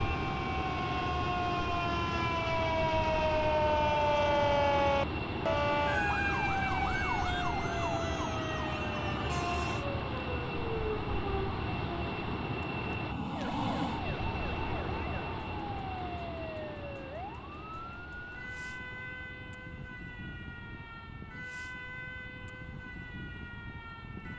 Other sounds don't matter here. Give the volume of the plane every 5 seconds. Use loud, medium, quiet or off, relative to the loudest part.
loud, loud, loud, medium, quiet.